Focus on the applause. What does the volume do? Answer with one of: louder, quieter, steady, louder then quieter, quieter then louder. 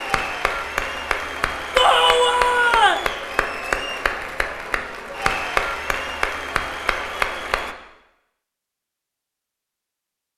steady.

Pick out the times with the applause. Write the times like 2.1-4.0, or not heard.
0.0-7.8.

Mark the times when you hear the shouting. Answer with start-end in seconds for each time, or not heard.
1.8-3.1.